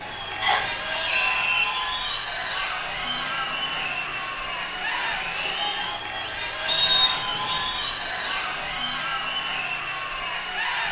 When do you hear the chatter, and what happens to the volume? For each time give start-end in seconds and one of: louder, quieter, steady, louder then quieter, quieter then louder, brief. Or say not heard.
0.0-10.8 steady.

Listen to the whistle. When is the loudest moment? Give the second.
7 s.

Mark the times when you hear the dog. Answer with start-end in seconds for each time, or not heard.
not heard.